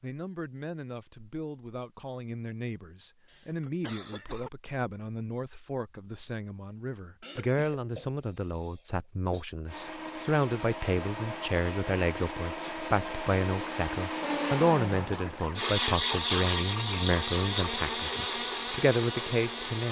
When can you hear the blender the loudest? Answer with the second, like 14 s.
16 s.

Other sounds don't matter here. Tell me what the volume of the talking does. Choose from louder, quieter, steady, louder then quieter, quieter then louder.
louder.